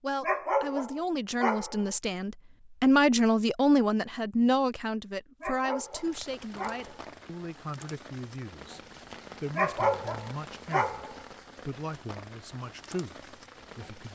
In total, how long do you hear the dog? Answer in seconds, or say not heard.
5 s.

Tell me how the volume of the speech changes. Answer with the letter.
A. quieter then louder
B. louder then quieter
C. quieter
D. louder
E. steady
C.